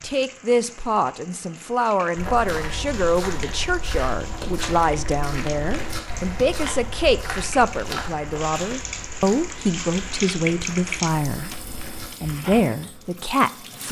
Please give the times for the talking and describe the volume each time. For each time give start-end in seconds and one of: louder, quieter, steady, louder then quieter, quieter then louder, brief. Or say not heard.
0.0-13.8 steady.